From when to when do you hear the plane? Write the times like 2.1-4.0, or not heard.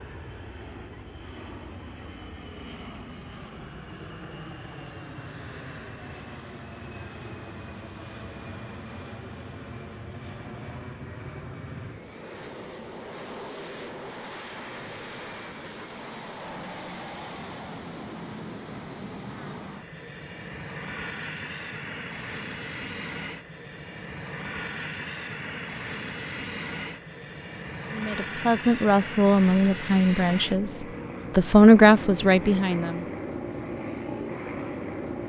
0.0-35.2.